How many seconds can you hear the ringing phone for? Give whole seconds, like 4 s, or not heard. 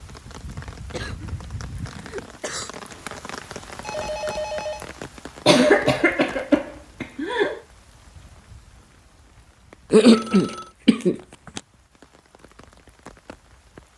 3 s.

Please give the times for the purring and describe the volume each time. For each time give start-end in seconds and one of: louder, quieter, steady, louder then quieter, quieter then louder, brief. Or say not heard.
not heard.